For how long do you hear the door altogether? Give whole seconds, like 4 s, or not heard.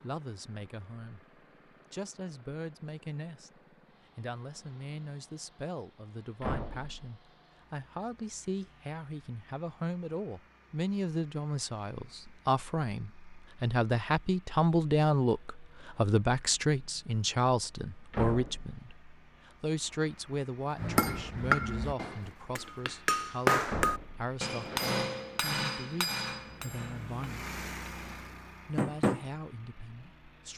2 s.